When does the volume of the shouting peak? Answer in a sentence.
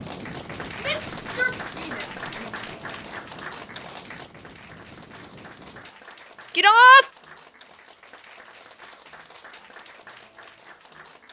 The volume of the shouting peaks at 7 seconds.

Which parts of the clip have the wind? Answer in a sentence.
You can hear the wind from 0.0 to 6.0 s.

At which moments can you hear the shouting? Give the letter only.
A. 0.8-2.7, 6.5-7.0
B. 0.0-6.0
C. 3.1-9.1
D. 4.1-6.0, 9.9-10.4
A.